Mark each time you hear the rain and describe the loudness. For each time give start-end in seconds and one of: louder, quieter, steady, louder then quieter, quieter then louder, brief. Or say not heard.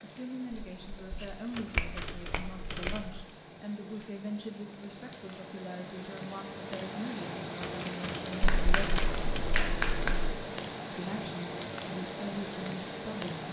0.0-13.4 louder.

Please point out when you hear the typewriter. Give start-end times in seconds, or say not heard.
1.5-3.4, 7.6-9.6.